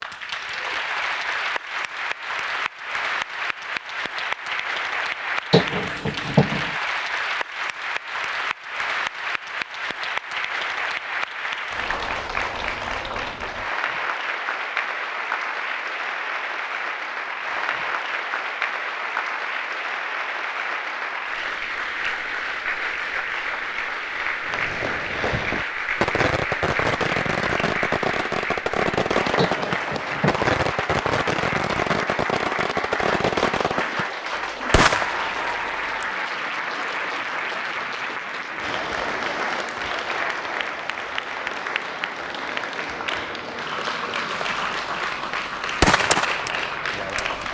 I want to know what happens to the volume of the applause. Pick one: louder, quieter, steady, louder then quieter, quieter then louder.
steady.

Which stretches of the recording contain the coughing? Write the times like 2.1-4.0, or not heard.
5.5-6.8, 29.4-30.5.